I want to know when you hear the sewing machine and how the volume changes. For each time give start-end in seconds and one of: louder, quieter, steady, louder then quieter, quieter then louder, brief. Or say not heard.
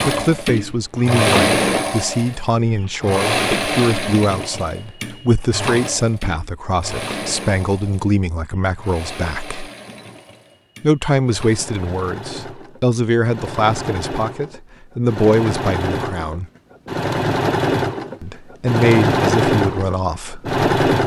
0.0-21.0 quieter then louder.